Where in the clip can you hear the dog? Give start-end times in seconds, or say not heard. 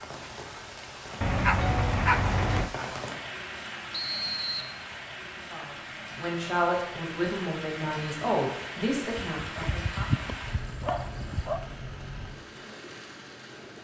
1.2-2.7, 9.4-11.6.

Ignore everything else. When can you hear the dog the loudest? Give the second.
2 s.